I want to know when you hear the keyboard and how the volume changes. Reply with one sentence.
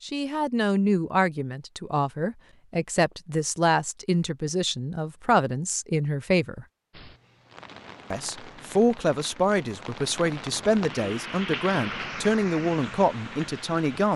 You can't hear the keyboard here.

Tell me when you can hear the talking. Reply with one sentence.
You can hear the talking from 0.0 to 6.7 s and from 8.1 to 14.1 s.